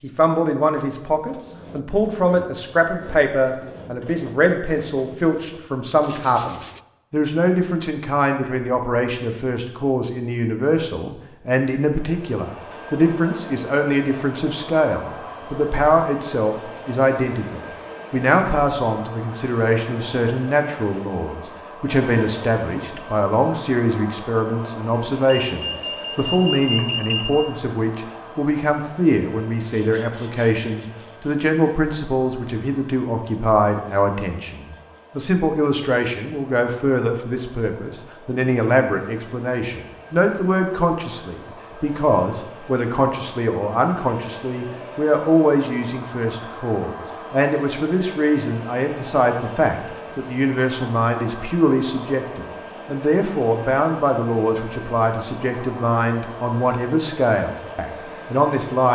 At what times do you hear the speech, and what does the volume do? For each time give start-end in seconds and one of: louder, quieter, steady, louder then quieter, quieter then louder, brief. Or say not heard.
0.0-58.9 steady.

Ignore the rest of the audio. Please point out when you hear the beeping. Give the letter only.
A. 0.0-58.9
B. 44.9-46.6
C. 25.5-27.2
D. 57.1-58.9
C.